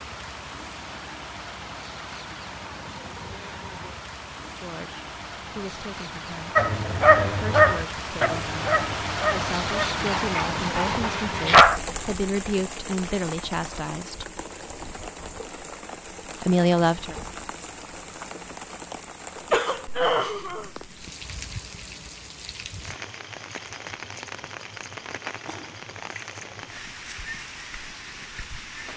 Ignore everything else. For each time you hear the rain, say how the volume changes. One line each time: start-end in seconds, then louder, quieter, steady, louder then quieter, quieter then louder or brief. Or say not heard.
0.0-28.9 louder then quieter.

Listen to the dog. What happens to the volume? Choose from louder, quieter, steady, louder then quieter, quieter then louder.
quieter.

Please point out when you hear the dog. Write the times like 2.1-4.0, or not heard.
6.5-11.8.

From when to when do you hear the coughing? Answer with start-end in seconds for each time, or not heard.
19.4-20.7.